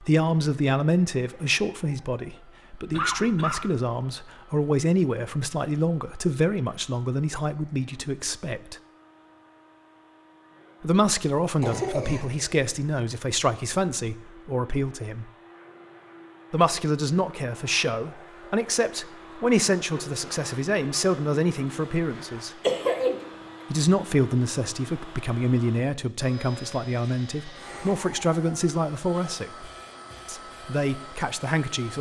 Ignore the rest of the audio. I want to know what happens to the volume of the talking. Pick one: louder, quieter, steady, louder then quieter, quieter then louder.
steady.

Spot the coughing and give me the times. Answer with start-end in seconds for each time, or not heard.
2.9-3.6, 11.6-12.5, 22.6-23.2.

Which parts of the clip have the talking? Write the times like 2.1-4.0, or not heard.
0.0-8.8, 10.8-15.3, 16.5-22.5, 23.7-31.9.